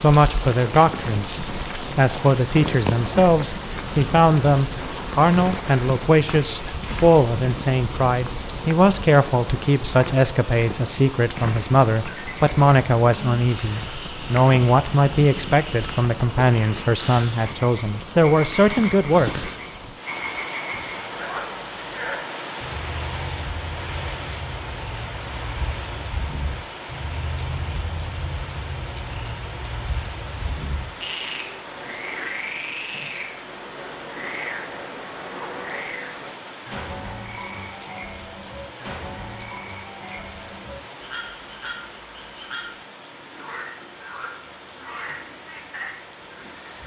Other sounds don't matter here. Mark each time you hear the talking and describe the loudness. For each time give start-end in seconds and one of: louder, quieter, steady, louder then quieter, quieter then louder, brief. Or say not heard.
0.0-19.4 steady.